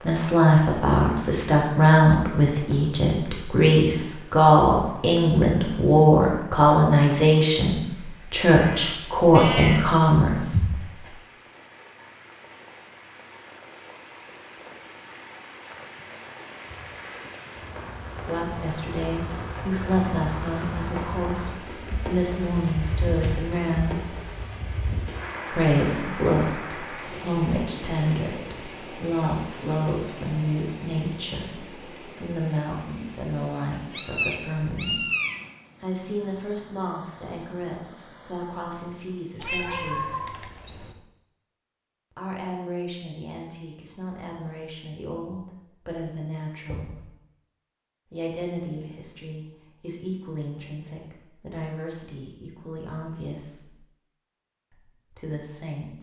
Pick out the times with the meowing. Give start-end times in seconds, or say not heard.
8.5-9.9, 33.9-35.4, 39.4-41.0.